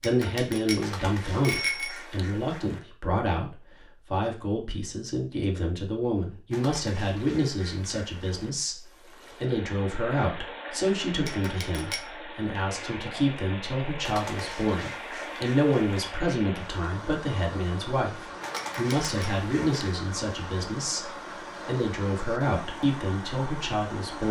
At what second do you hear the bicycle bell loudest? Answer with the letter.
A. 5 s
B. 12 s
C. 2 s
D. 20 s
C.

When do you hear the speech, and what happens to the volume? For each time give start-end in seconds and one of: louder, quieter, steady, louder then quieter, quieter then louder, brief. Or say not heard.
0.0-24.2 steady.